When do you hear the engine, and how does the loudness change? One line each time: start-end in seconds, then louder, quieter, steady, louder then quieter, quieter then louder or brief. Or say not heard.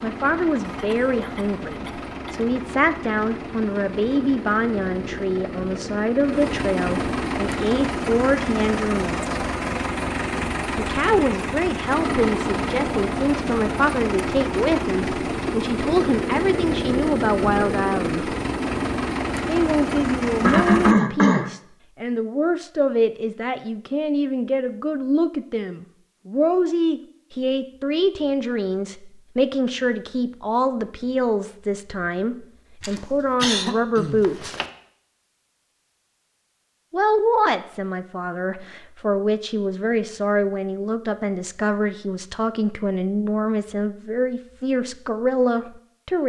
0.0-20.9 louder.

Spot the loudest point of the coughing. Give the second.
21 s.